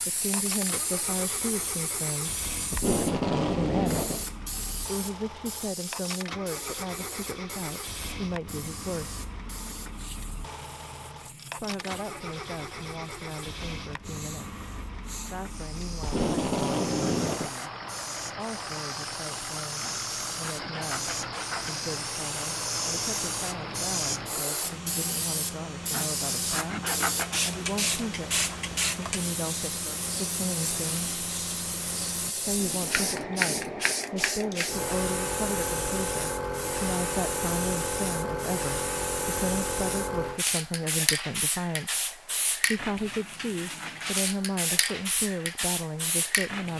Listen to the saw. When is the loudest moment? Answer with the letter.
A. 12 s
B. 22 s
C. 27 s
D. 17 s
C.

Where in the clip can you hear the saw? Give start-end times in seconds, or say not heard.
19.7-21.7, 25.8-27.4.